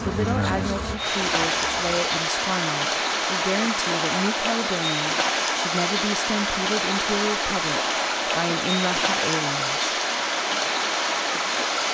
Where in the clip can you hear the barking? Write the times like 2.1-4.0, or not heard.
not heard.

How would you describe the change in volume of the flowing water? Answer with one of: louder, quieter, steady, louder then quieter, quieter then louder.
steady.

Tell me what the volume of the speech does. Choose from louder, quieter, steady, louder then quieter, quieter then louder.
steady.